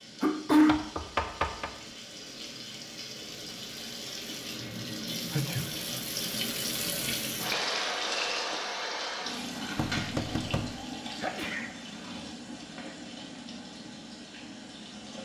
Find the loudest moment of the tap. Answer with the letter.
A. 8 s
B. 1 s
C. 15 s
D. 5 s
A.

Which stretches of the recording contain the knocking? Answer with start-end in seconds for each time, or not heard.
0.7-1.7, 9.8-10.8.